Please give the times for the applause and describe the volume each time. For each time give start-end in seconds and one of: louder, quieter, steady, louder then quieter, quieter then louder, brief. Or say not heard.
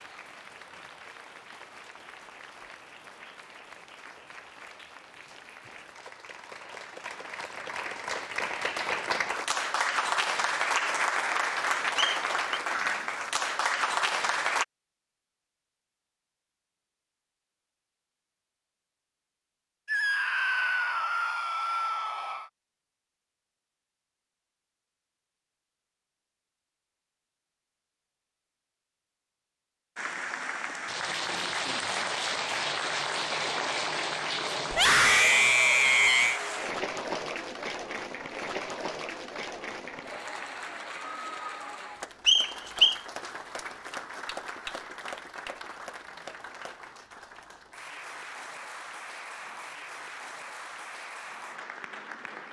0.0-14.7 louder
29.9-52.4 quieter.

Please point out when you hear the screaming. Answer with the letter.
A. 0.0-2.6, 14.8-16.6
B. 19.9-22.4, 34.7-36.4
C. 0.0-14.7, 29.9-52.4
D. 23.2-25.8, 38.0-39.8
B.